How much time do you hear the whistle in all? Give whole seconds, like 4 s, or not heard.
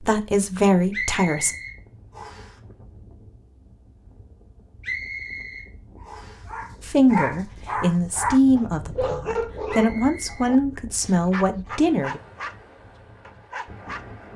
4 s.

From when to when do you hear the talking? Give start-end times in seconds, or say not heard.
0.0-1.5, 6.8-12.2.